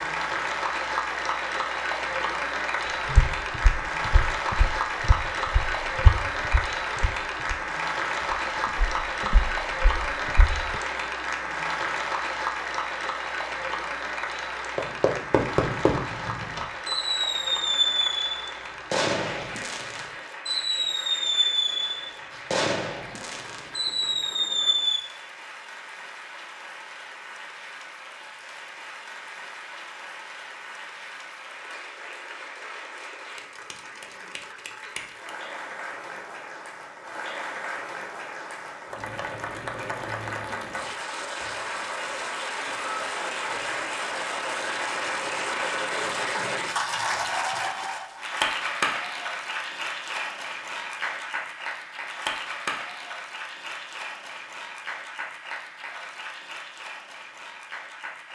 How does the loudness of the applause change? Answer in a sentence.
The loudness of the applause goes down, then up.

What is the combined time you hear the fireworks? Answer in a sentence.
You can hear the fireworks for 10 seconds altogether.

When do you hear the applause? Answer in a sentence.
You can hear the applause from 0.0 to 58.3 s.